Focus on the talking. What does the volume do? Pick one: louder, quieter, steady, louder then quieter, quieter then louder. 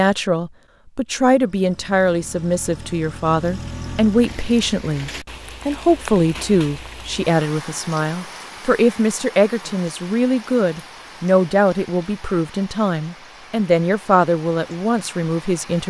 steady.